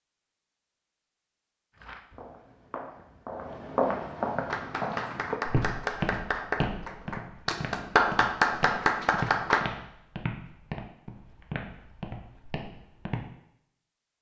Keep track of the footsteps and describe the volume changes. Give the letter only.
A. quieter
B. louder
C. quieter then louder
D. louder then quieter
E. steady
A.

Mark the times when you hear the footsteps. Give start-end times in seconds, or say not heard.
1.8-13.2.